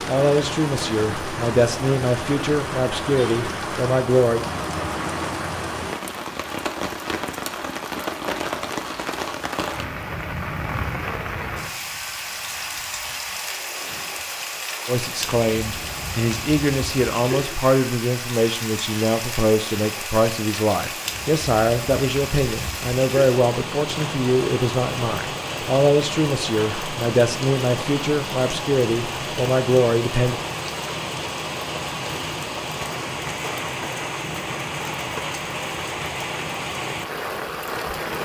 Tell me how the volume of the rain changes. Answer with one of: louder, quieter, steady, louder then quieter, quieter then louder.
steady.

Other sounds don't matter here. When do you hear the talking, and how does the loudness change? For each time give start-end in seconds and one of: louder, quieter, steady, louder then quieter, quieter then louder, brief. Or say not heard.
0.1-4.5 steady
14.8-30.4 steady.